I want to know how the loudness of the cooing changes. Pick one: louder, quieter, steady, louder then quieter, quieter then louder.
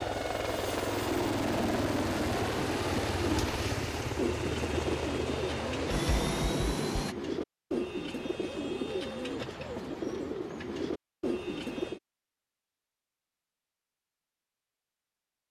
steady.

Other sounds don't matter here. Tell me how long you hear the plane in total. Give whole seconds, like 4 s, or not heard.
7 s.